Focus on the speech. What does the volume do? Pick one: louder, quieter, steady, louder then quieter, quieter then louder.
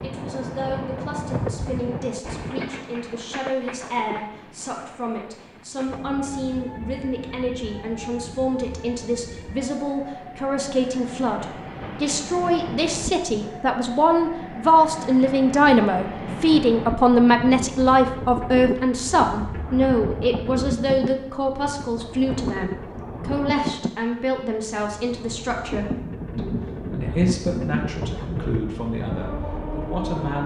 louder then quieter.